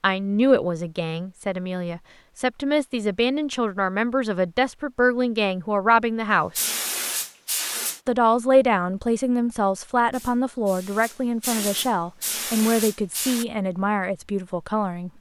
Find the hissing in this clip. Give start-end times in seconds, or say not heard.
6.5-8.0, 10.1-13.4.